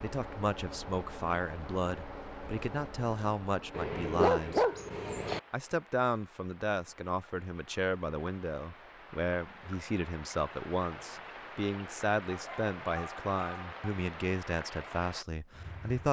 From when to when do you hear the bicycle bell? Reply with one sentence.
You can't hear the bicycle bell here.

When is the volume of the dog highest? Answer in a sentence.
The volume of the dog peaks at 4 seconds.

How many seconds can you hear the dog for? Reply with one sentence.
The dog can be heard for 3 seconds in total.